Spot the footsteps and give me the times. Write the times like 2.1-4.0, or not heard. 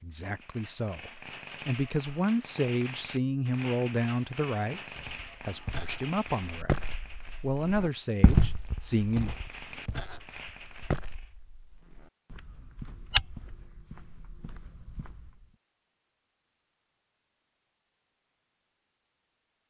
5.0-15.4.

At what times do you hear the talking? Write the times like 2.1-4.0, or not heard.
0.0-9.3.